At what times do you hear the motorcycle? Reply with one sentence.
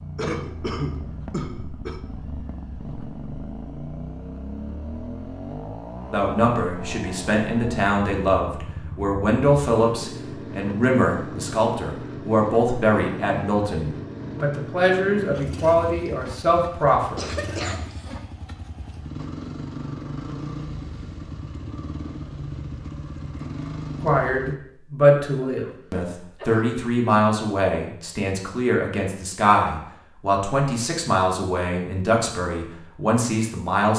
You can hear the motorcycle from 0.0 to 24.6 s.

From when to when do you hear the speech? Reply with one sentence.
You can hear the speech from 6.1 to 17.2 s and from 24.0 to 33.9 s.